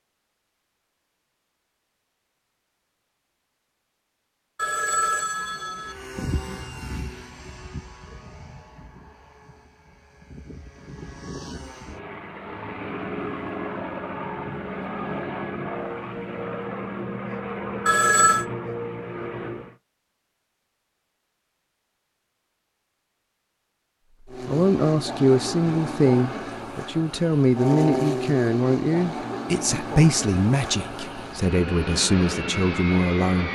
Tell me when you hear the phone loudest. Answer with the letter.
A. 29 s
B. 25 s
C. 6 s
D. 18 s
D.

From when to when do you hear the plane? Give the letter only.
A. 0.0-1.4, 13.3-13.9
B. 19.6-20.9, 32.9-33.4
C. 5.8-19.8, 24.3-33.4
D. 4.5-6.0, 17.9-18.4
C.